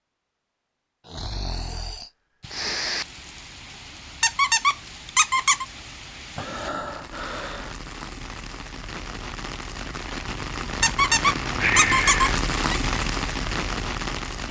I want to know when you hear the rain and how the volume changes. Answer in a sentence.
The rain can be heard from 2.4 to 14.4 s, getting louder.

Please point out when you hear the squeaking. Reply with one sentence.
The squeaking can be heard from 4.2 to 5.7 s and from 10.8 to 12.8 s.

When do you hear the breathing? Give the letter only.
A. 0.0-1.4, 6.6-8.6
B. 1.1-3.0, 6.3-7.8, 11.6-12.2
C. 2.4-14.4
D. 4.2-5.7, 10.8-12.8
B.